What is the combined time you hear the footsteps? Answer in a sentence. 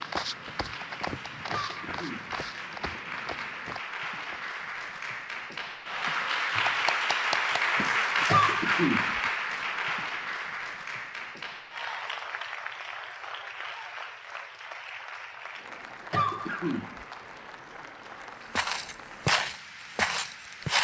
You can hear the footsteps for 7 seconds altogether.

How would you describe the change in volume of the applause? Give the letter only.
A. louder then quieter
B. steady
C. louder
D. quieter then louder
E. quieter
A.